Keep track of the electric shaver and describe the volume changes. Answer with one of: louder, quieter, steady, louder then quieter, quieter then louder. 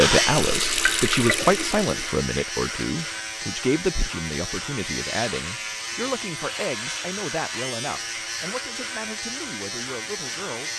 steady.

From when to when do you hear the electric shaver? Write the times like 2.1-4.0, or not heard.
0.0-10.7.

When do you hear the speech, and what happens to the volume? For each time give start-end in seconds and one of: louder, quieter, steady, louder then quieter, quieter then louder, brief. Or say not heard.
0.0-10.7 quieter.